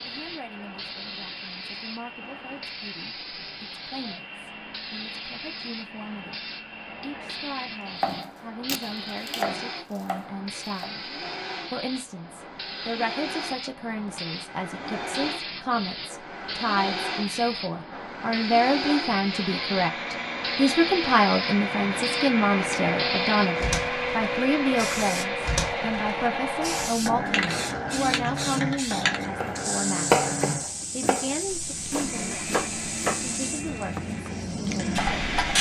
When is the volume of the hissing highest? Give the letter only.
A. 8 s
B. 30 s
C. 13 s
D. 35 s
D.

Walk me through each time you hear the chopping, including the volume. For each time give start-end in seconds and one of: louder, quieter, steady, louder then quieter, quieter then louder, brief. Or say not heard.
8.0-10.9 brief
29.4-34.2 quieter then louder.